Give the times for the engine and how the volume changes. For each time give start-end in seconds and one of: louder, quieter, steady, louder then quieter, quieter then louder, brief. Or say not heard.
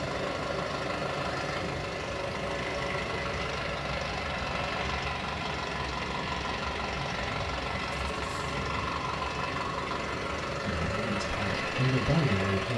0.0-12.7 steady.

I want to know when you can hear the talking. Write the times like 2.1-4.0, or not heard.
10.7-12.7.